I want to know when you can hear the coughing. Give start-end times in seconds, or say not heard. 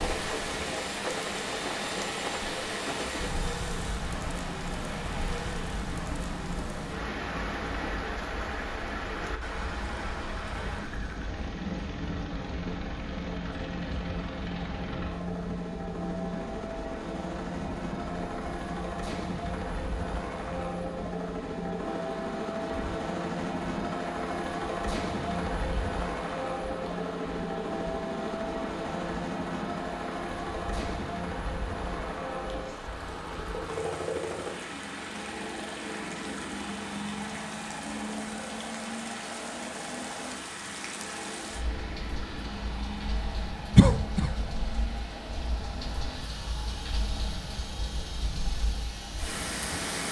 43.8-44.3.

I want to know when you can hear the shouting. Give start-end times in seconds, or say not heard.
not heard.